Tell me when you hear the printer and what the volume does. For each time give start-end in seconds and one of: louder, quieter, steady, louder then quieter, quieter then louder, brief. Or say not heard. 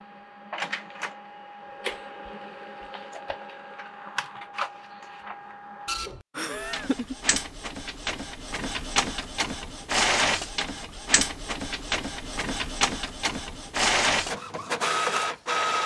0.0-15.8 louder.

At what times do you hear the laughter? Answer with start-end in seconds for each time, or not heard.
6.3-7.2.